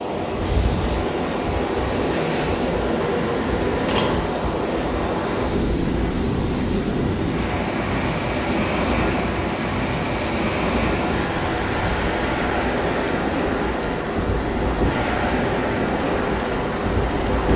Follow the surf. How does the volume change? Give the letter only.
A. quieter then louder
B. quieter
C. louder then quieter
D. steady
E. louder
D.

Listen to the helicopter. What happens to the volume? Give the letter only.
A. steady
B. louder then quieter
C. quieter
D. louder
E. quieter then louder
A.